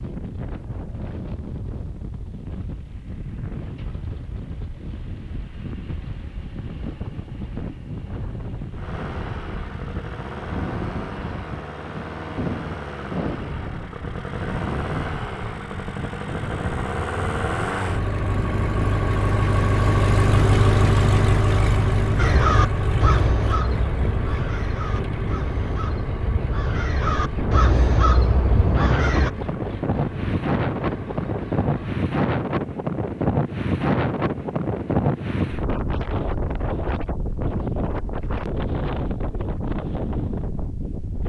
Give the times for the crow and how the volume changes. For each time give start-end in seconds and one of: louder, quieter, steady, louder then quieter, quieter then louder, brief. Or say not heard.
22.1-29.3 quieter then louder.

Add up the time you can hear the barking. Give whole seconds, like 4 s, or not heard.
not heard.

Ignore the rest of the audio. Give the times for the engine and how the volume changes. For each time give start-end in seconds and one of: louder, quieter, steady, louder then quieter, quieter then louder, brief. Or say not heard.
8.7-32.0 louder then quieter.